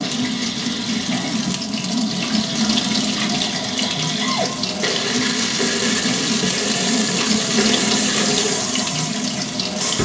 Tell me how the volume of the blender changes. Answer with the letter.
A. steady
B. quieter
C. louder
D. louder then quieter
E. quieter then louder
C.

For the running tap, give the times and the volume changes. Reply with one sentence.
You can hear the running tap from 0.0 to 10.0 s, at a steady volume.